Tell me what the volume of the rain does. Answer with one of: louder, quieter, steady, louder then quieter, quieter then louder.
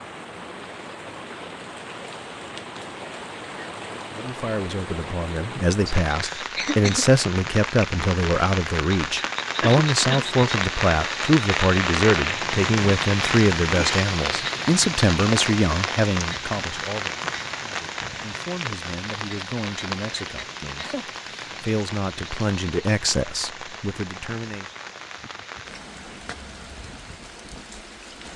louder then quieter.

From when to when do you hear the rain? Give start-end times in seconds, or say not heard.
0.0-28.3.